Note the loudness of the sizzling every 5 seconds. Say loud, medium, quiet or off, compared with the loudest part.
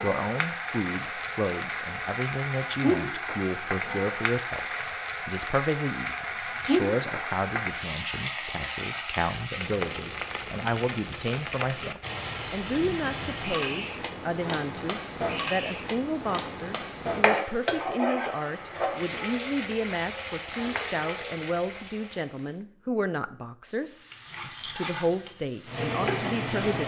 loud, loud, loud, loud, medium, loud.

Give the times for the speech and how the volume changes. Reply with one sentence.
The speech can be heard from 0.0 to 4.7 s, at a steady volume; and from 5.2 to 26.8 s, at a steady volume.